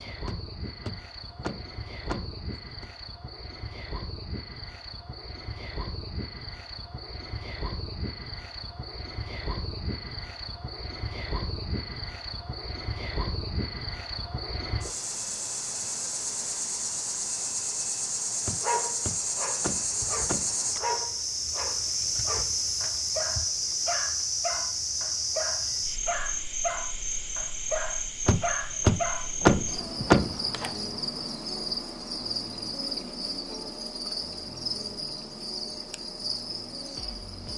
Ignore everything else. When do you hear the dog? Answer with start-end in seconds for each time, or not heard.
18.5-29.3.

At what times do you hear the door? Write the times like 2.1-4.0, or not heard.
0.2-2.9, 18.4-20.6, 28.2-30.4.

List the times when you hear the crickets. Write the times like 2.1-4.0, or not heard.
0.0-37.5.